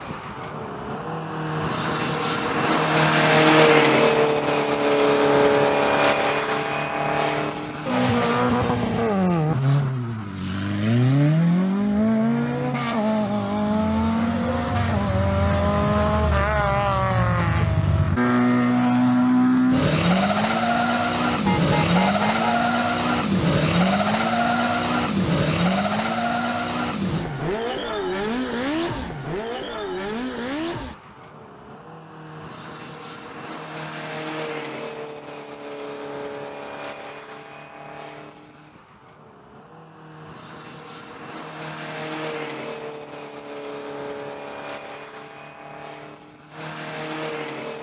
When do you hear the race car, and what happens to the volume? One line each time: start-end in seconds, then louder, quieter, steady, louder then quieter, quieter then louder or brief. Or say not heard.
0.0-47.7 quieter.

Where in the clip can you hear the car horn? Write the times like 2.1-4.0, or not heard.
21.4-22.7.